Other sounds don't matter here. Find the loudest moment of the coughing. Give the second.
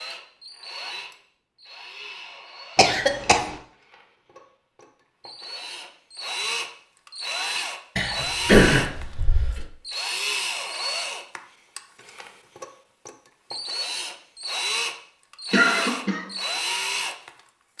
9 s.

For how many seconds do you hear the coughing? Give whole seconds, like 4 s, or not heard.
3 s.